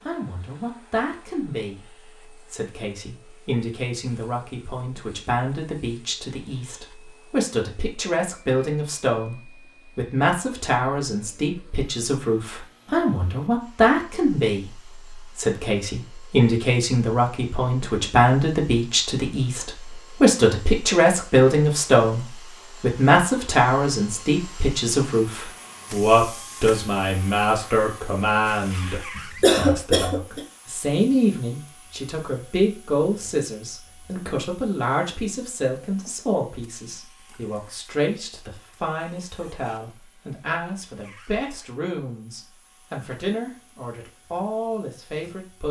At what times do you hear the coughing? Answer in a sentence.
You can hear the coughing from 29.1 to 30.4 s.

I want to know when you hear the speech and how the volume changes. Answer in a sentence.
You can hear the speech from 0.0 to 45.6 s, getting louder then quieter.